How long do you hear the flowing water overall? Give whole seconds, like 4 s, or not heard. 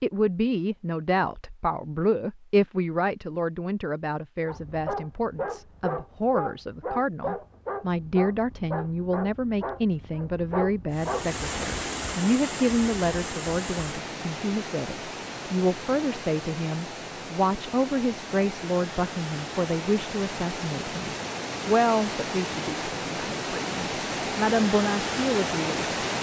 15 s.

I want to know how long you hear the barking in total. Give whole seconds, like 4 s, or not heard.
7 s.